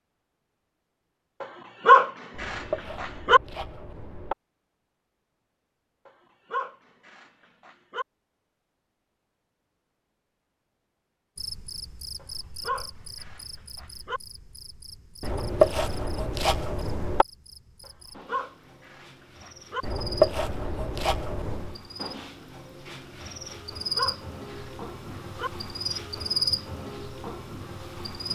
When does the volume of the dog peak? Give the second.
2 s.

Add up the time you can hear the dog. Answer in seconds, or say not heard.
10 s.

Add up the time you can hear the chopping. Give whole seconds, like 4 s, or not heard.
6 s.